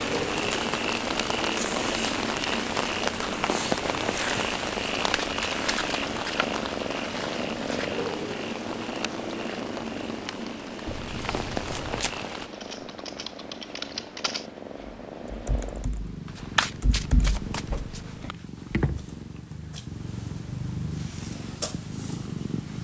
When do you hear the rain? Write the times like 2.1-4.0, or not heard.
0.0-12.5.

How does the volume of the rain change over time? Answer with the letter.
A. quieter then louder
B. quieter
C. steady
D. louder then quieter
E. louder
B.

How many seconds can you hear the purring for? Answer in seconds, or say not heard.
23 s.